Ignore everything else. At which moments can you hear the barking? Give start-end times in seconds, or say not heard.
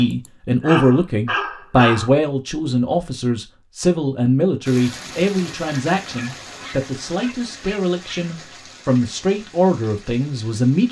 0.2-2.1, 5.7-8.2.